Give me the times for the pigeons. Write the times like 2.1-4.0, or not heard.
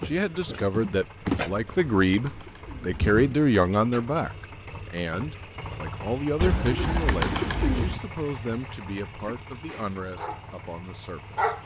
1.5-3.4, 6.4-8.0.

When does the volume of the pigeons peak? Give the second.
7 s.